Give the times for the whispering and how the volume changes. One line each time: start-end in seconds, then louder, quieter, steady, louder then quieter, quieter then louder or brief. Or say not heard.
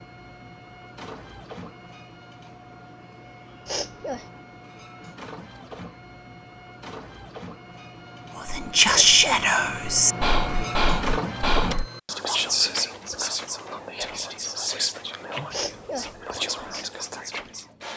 8.3-17.6 quieter.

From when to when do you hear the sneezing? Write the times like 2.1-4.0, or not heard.
3.6-4.3, 8.8-9.5, 15.5-16.1.